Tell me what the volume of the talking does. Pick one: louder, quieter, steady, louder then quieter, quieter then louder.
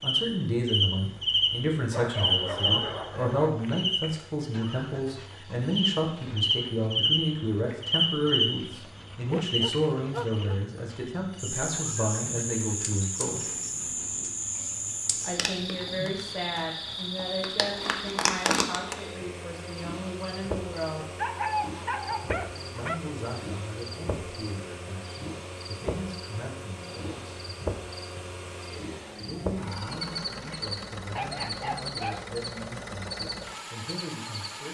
quieter.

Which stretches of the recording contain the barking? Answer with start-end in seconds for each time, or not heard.
1.9-3.5, 9.3-10.6, 21.1-22.9, 31.1-32.3.